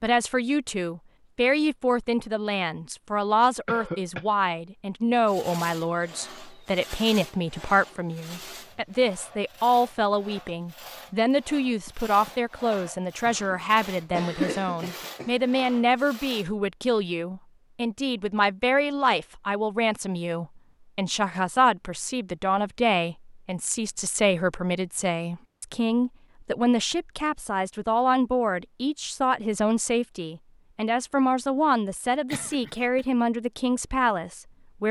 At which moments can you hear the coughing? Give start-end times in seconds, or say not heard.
3.6-4.2, 13.2-15.3, 32.3-33.0.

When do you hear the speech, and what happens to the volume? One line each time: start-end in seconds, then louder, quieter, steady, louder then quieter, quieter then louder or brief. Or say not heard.
0.0-34.8 steady.